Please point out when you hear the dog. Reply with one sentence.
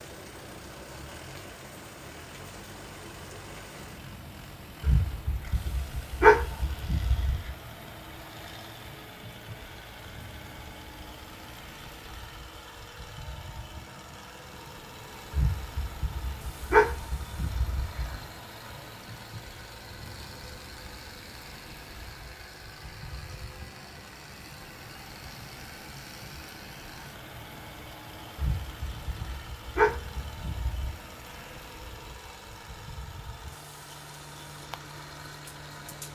You can hear the dog from 4.8 to 7.5 s, from 15.3 to 18.2 s and from 28.4 to 31.1 s.